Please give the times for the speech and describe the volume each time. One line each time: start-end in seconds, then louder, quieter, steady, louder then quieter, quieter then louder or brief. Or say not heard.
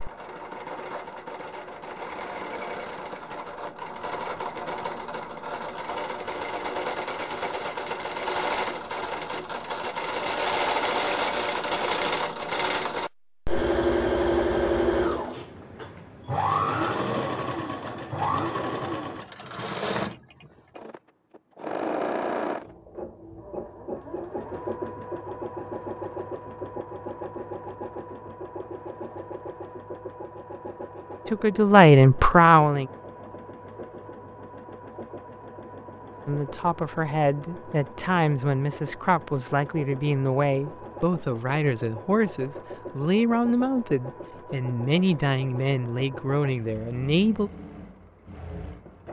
31.2-32.9 brief
36.2-47.5 steady.